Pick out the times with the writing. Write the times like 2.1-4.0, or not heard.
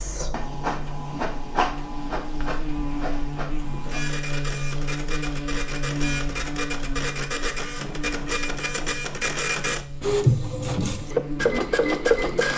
not heard.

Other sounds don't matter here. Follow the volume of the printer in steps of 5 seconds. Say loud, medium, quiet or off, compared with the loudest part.
medium, medium, loud.